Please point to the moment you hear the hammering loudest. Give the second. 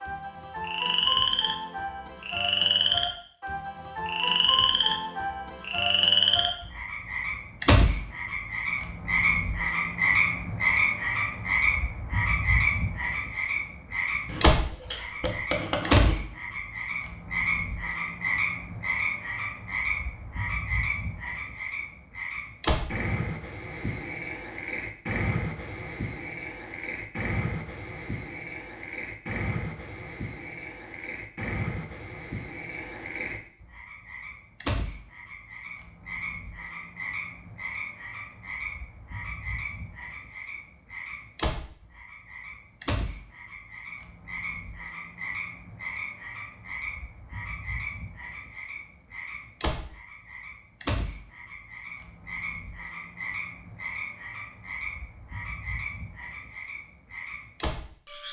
16 s.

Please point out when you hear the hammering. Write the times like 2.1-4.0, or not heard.
14.2-16.1.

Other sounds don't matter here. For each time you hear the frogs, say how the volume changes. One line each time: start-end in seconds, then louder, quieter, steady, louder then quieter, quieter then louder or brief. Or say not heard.
0.0-58.2 quieter.